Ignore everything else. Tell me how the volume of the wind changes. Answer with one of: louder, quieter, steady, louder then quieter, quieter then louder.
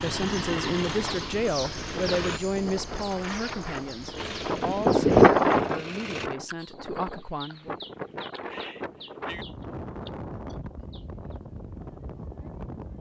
louder then quieter.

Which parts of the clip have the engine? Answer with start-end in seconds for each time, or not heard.
0.0-2.4, 4.2-6.3.